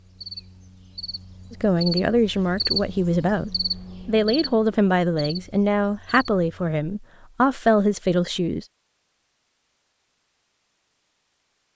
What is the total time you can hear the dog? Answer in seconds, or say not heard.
not heard.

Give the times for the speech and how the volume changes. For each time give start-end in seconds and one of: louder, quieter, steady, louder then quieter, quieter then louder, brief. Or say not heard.
1.5-8.7 steady.